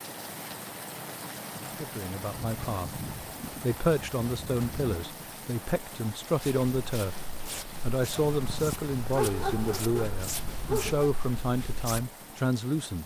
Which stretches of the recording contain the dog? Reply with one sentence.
You can hear the dog from 2.3 to 5.0 s and from 8.2 to 11.1 s.